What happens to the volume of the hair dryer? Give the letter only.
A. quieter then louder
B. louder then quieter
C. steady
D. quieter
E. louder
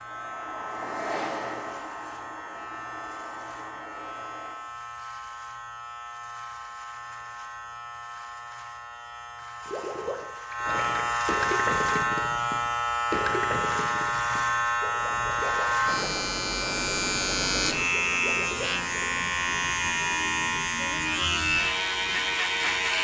D.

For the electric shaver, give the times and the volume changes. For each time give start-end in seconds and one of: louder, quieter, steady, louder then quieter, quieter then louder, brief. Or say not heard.
0.0-23.0 louder.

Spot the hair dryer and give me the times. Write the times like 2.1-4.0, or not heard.
0.0-4.5.